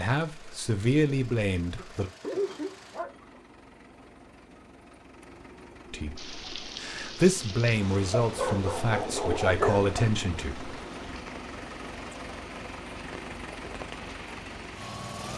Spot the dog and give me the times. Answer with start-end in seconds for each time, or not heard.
1.8-3.4, 8.2-10.1.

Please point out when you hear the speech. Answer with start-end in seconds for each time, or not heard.
0.0-2.1, 5.9-10.7.